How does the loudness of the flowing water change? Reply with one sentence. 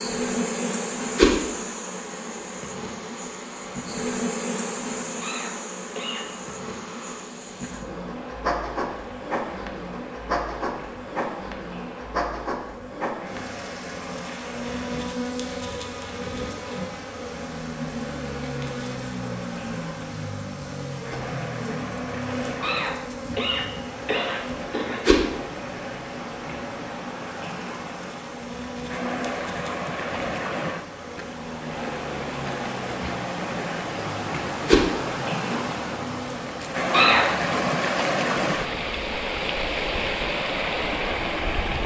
The loudness of the flowing water goes up.